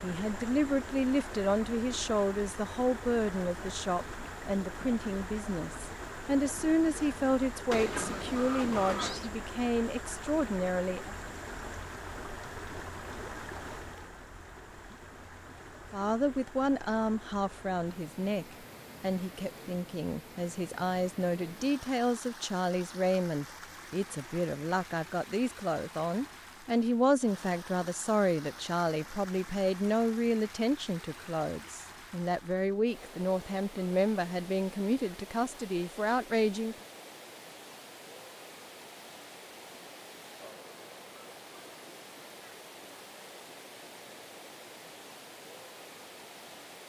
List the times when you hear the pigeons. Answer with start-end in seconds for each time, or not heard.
7.7-9.3.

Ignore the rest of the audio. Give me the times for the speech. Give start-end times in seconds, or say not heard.
0.0-11.2, 15.9-36.8.